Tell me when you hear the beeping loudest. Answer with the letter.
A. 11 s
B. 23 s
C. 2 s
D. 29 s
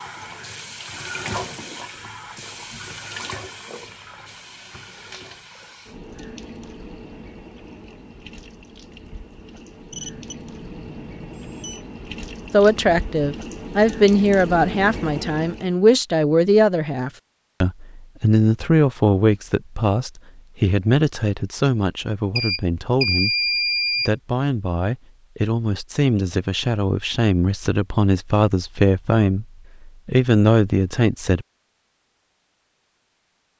B.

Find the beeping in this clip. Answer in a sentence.
The beeping can be heard from 9.9 to 11.8 s and from 22.4 to 24.1 s.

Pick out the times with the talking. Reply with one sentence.
You can hear the talking from 12.5 to 23.4 s and from 24.1 to 31.4 s.